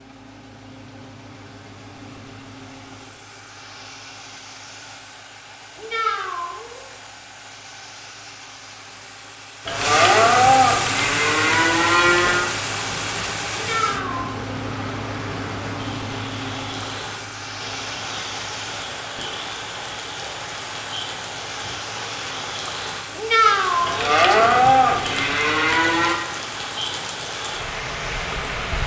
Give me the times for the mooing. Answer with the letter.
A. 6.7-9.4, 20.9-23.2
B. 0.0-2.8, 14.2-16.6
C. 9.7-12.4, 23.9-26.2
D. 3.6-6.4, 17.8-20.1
C.